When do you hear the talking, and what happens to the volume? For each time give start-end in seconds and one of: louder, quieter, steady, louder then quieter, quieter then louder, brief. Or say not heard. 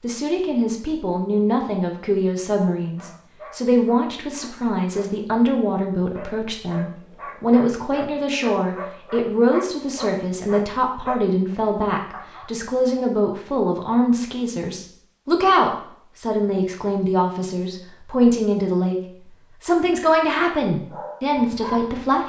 0.0-22.2 steady.